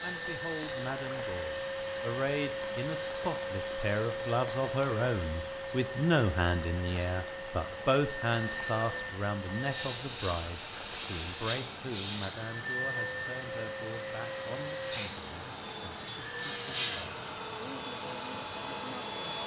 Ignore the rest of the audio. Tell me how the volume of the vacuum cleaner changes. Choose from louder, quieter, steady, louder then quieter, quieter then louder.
steady.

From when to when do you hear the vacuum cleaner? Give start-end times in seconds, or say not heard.
0.0-19.4.